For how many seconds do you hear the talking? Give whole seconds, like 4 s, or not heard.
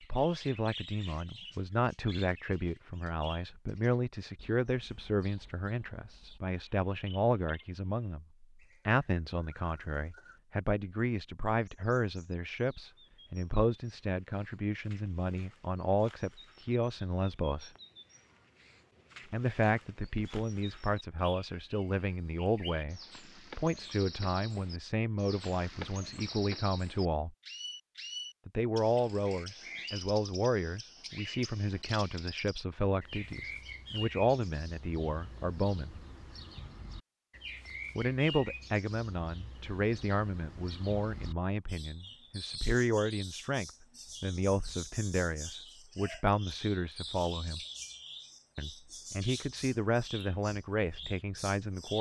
46 s.